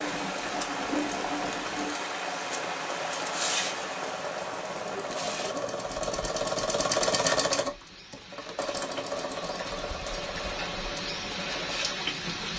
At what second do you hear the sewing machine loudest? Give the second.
7 s.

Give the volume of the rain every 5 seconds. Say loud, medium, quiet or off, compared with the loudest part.
loud, medium, loud.